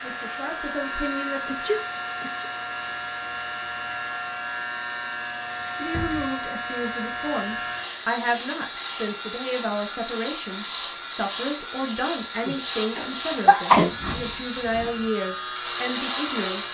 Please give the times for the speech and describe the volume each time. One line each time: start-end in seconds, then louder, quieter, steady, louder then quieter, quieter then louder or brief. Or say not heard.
0.0-1.6 brief
5.8-16.6 steady.